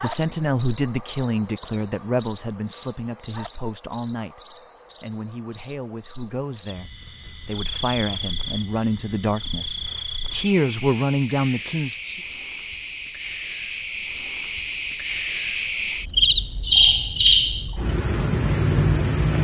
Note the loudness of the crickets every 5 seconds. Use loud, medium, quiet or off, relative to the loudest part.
loud, medium, medium, loud.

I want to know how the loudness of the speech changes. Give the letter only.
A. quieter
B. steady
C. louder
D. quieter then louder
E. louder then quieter
D.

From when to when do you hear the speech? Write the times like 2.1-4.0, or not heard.
0.0-12.2.